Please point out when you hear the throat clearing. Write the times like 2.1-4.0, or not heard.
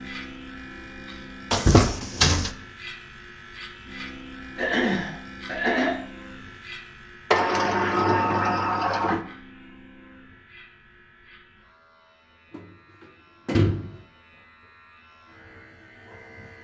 4.5-6.0.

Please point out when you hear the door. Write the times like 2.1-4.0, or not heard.
1.5-2.5, 7.3-9.2, 12.5-13.9.